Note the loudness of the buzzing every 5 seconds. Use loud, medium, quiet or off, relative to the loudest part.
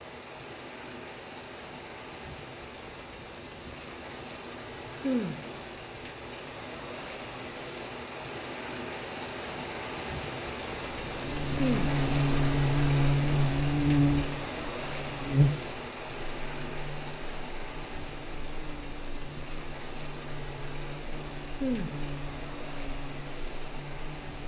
off, off, loud, medium, quiet.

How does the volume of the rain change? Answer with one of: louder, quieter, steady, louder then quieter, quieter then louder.
louder then quieter.